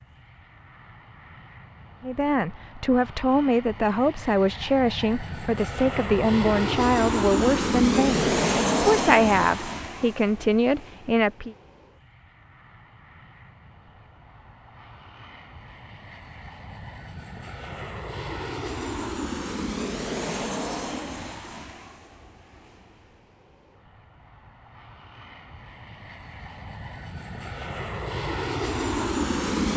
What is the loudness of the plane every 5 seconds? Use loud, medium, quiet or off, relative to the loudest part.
quiet, loud, quiet, medium, medium, medium.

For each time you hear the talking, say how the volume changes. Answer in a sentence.
The talking can be heard from 2.0 to 11.6 s, at a steady volume.